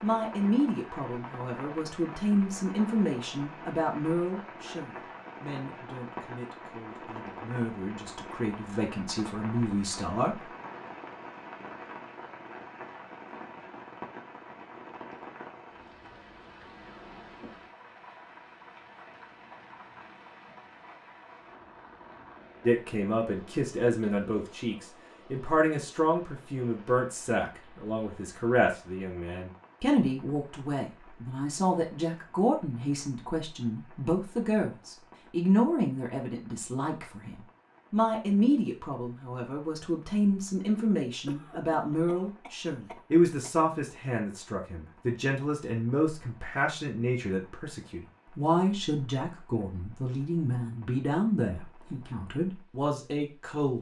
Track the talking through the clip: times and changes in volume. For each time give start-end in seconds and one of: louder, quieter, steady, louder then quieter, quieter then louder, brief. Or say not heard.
0.0-10.4 quieter then louder
22.6-53.7 steady.